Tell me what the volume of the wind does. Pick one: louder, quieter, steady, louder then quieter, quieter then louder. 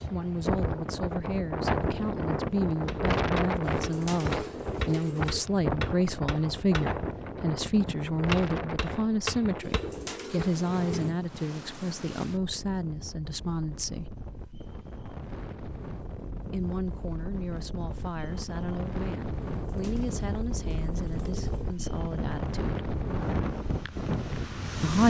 quieter then louder.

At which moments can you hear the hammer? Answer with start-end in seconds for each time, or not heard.
2.7-9.9.